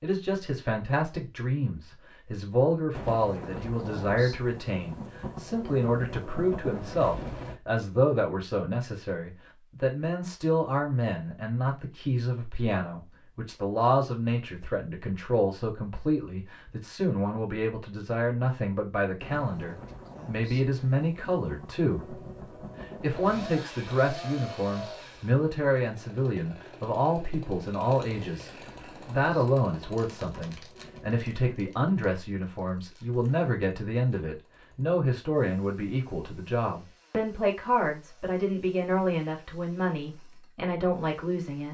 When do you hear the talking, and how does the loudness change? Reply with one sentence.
You can hear the talking from 0.0 to 22.2 s, at a steady volume; and from 22.8 to 41.6 s, at a steady volume.